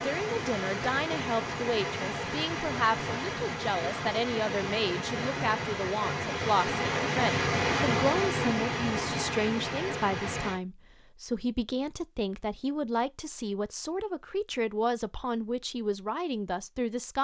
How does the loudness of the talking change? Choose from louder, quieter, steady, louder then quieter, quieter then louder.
steady.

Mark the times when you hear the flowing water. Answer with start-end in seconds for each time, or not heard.
0.0-10.6.